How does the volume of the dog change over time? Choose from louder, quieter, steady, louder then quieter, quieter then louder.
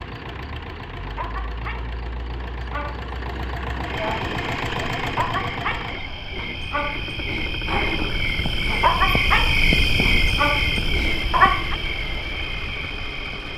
louder.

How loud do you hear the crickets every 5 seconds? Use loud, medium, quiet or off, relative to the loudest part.
quiet, loud, loud.